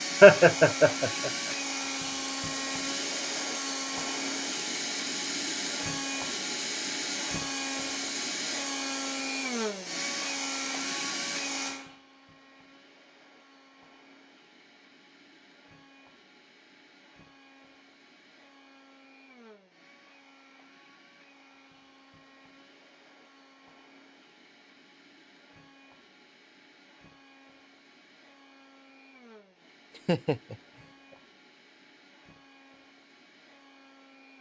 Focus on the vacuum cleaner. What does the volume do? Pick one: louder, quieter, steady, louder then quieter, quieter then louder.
quieter.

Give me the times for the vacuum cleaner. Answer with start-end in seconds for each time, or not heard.
0.0-34.3.